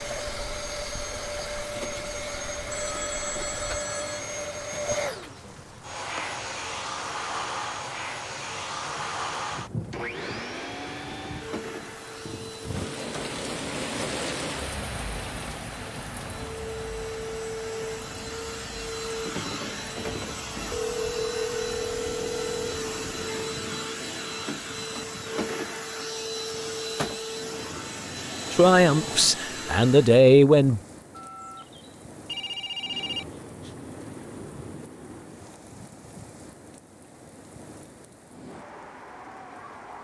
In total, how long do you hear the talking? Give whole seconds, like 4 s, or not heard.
2 s.